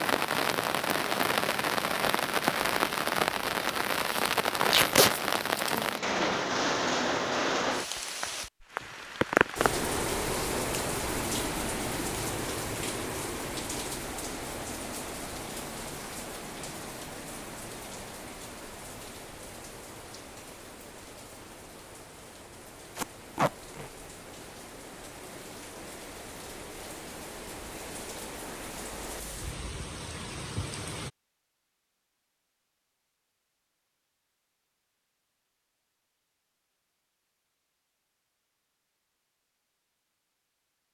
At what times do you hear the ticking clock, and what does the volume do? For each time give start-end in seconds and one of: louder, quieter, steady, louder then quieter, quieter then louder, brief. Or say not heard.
not heard.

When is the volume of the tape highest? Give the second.
5 s.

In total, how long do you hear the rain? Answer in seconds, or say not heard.
31 s.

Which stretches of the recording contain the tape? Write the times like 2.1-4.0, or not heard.
4.7-5.2, 22.9-23.9.